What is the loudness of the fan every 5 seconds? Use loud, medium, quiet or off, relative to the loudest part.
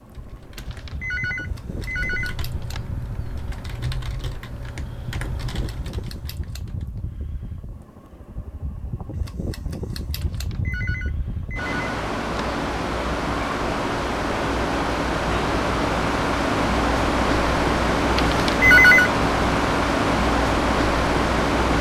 quiet, quiet, medium, loud, loud.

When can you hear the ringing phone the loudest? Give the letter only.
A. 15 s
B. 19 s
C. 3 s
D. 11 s
B.